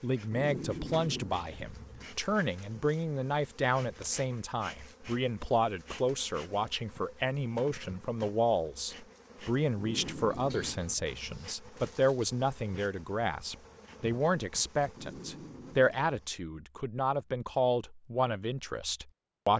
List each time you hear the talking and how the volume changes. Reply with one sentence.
The talking can be heard from 0.0 to 19.5 s, at a steady volume.